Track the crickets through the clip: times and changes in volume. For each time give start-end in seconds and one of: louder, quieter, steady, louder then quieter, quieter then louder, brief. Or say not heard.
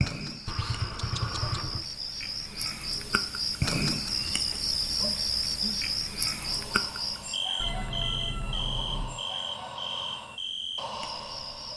0.0-11.7 louder then quieter.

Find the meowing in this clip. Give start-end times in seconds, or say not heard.
0.5-1.9, 7.6-9.2.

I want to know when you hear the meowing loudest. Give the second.
1 s.